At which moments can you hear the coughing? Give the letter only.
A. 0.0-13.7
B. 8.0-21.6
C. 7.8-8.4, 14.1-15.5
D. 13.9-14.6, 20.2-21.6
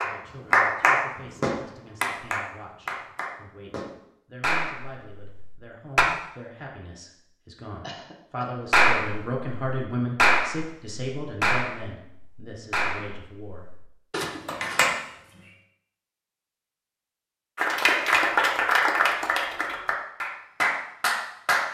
C.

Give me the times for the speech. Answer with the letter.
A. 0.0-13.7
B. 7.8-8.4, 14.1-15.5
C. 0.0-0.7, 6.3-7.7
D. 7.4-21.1
A.